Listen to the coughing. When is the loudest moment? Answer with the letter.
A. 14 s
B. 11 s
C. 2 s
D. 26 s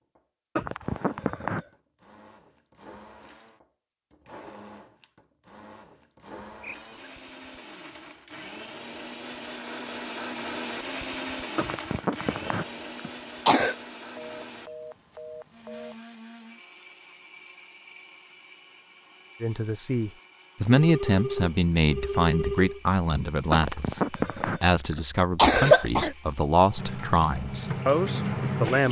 D.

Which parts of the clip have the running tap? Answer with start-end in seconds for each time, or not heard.
26.8-28.8.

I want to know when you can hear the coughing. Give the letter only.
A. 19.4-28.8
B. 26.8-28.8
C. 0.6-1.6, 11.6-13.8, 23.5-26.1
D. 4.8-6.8
C.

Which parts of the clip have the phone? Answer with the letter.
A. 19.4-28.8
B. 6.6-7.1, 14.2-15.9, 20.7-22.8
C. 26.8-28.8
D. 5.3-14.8
B.